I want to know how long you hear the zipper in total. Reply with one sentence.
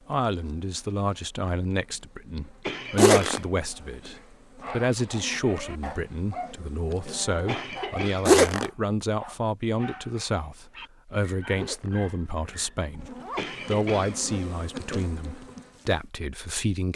The zipper can be heard for 3 seconds in total.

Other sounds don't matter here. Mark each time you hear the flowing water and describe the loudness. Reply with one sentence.
You can't hear the flowing water here.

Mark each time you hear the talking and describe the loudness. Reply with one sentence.
The talking can be heard from 0.1 to 16.9 s, at a steady volume.